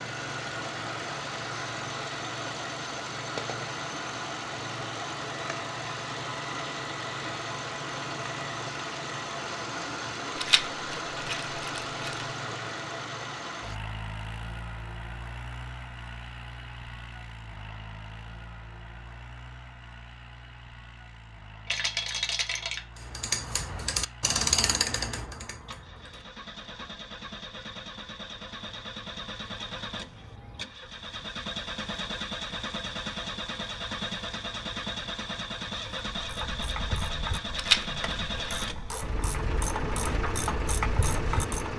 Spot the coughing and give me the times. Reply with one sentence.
You can't hear the coughing here.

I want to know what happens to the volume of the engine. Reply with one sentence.
The loudness of the engine goes down, then up.